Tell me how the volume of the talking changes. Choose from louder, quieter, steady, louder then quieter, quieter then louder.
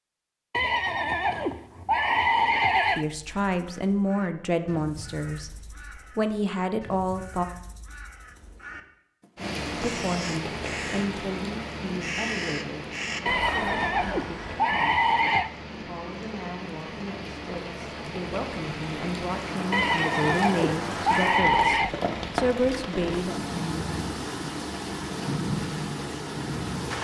quieter then louder.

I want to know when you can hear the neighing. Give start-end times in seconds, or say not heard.
0.5-3.0, 13.2-15.5, 19.7-21.9.